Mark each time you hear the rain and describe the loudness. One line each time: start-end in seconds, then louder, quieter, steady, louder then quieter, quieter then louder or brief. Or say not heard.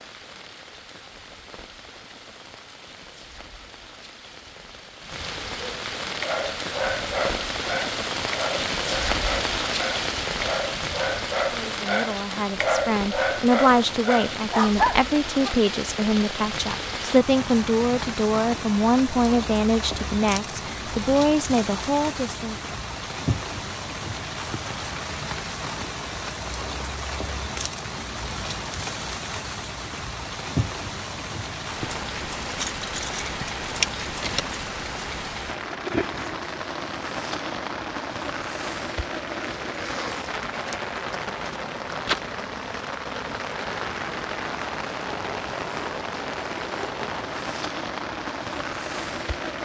0.0-49.5 steady.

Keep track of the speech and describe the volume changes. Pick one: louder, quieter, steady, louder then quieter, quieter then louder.
steady.